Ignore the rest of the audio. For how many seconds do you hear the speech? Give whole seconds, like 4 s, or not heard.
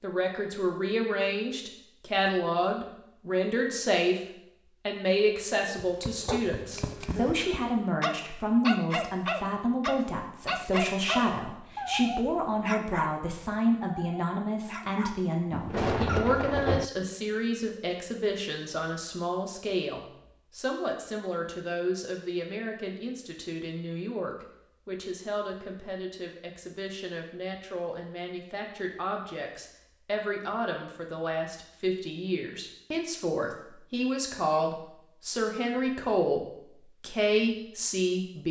38 s.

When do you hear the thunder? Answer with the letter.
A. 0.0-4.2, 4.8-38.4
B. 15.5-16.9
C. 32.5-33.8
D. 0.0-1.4
B.